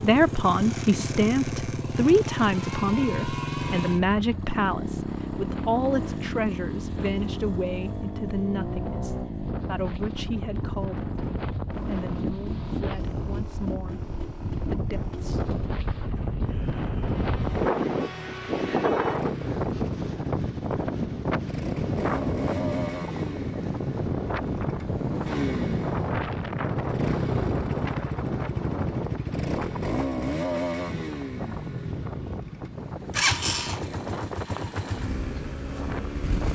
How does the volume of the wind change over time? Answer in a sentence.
The loudness of the wind goes up, then down.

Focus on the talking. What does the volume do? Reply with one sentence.
The volume of the talking goes down.